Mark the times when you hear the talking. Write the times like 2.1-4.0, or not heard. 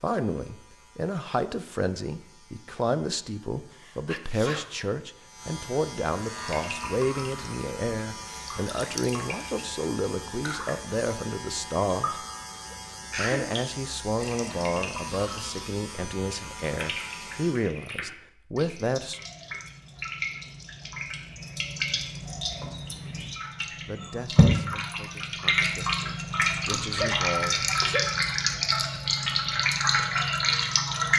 0.0-12.2, 13.2-19.2, 23.9-27.6.